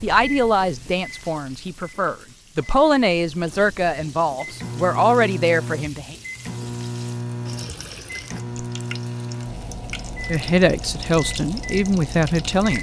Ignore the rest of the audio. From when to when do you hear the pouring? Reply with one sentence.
The pouring can be heard from 7.5 to 8.4 s.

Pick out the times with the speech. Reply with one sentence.
The speech can be heard from 0.0 to 6.2 s and from 10.2 to 12.7 s.